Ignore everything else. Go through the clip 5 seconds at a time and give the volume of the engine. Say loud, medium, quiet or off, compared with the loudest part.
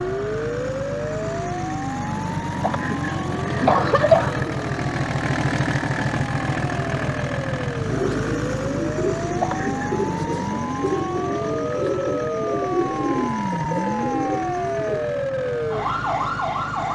loud, loud, medium, medium.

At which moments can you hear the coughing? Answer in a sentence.
The coughing can be heard from 2.6 to 4.5 s and from 9.4 to 9.9 s.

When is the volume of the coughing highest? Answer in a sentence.
The volume of the coughing peaks at 4 seconds.